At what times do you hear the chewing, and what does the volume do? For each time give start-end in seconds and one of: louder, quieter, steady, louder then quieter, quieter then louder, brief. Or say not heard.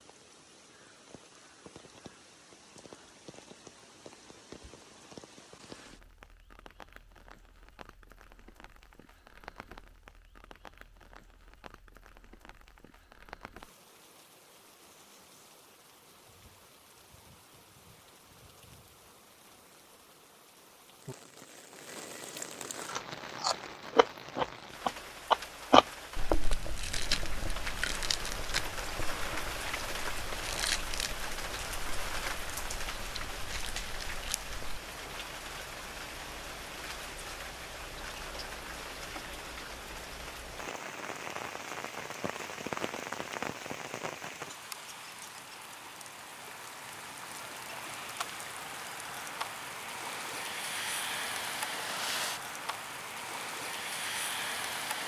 22.8-34.8 quieter.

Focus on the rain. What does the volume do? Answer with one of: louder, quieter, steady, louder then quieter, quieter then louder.
louder.